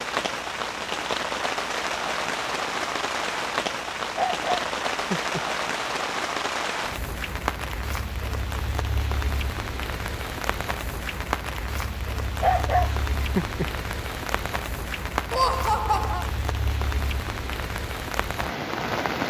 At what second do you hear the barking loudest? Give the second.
13 s.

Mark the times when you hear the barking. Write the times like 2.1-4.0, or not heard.
4.2-5.4, 12.4-13.7.